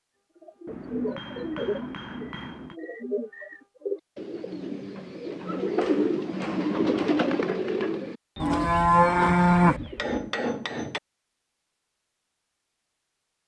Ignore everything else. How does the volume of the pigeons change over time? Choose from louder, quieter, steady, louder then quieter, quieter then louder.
louder then quieter.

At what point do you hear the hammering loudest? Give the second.
10 s.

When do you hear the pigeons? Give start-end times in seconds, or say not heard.
0.4-10.2.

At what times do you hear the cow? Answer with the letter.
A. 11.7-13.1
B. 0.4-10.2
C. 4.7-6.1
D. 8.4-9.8
D.